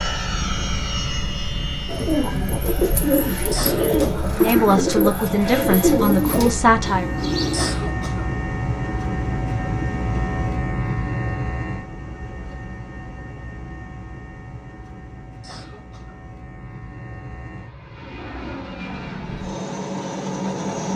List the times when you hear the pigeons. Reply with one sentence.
You can hear the pigeons from 1.9 to 7.7 s.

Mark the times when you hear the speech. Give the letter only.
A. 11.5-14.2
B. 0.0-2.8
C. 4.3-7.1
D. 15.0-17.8
C.